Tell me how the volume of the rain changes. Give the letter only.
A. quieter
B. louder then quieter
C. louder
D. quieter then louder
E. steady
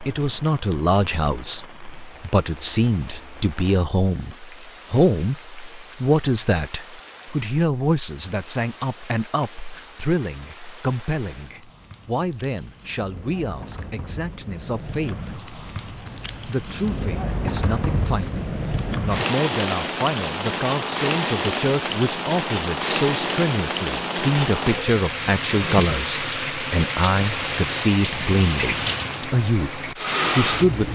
C.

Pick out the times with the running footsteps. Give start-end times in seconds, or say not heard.
not heard.